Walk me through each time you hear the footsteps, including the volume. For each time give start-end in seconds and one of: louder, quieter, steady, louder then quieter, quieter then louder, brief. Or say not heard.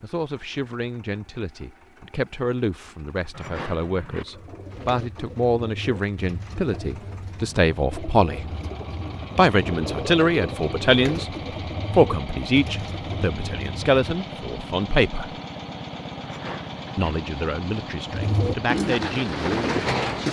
not heard.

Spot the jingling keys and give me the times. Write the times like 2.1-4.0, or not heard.
3.3-4.2, 16.2-17.1.